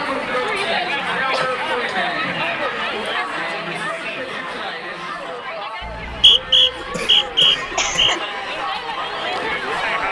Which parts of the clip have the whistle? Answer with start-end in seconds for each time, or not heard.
5.8-8.2.